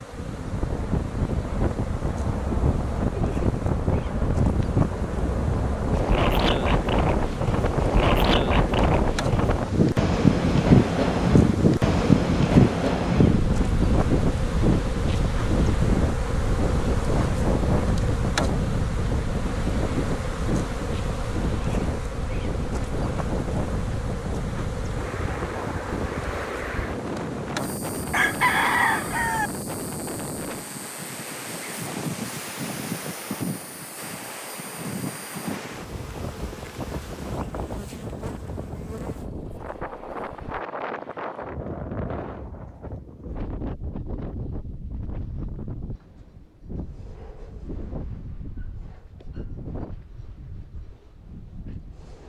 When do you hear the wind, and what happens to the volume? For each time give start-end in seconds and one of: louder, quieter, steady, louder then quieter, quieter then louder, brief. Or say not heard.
0.0-52.2 quieter.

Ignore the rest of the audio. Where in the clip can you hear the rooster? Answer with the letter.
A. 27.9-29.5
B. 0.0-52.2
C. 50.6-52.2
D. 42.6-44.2
A.